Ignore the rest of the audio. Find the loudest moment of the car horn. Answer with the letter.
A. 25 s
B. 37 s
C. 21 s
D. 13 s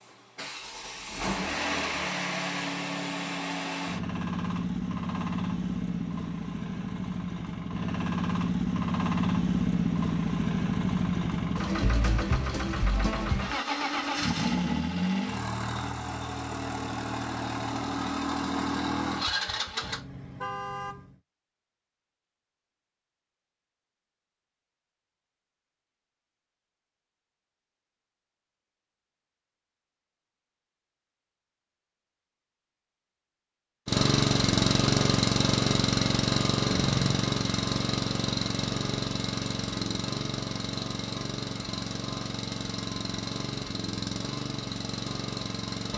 B.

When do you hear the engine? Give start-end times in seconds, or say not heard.
0.0-20.0, 33.9-45.9.